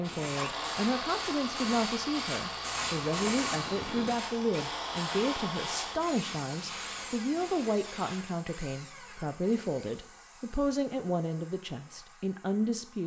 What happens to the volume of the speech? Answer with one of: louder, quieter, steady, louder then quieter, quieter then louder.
steady.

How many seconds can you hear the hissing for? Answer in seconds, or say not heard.
8 s.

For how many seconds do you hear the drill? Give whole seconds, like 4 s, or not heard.
13 s.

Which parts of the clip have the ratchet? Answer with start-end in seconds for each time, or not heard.
not heard.